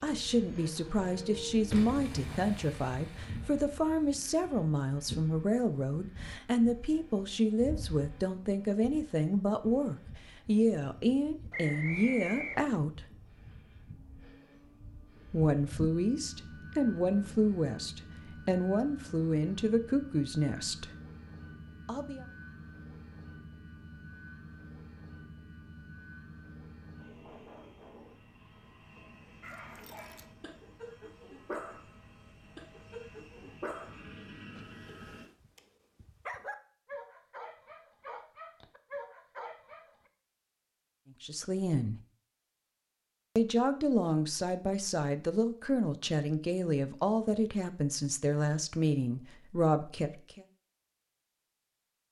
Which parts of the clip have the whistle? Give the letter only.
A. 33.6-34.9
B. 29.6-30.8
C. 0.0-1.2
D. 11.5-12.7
D.